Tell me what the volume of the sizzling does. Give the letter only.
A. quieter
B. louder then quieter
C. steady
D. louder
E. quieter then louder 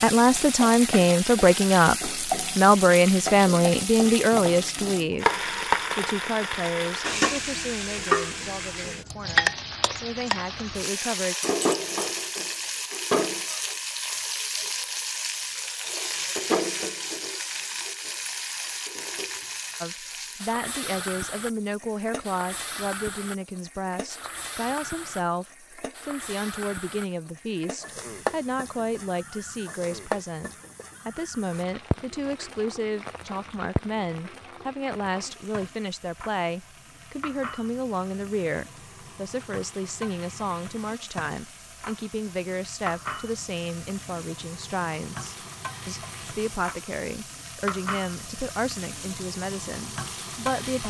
A.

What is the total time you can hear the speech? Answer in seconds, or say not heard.
42 s.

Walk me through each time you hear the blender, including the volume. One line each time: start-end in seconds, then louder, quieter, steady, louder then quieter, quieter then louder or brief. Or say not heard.
not heard.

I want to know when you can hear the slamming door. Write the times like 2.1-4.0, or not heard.
not heard.